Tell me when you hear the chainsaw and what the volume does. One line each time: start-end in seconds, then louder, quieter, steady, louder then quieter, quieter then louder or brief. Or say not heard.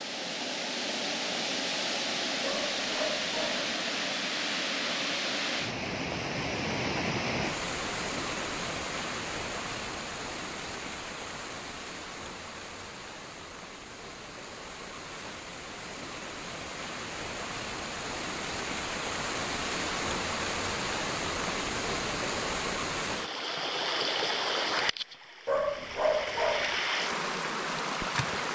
not heard.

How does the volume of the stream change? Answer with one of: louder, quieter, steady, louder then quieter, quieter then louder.
quieter then louder.